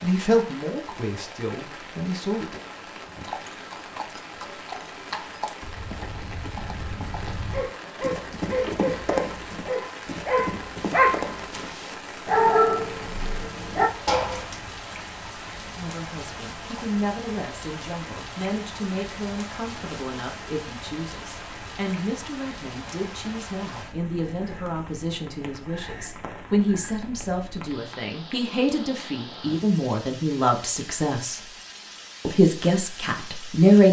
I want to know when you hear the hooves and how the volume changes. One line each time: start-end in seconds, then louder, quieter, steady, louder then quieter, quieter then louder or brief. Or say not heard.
3.0-11.8 louder.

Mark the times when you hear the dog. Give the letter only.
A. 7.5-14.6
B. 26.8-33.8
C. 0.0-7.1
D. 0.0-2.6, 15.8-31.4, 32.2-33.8
A.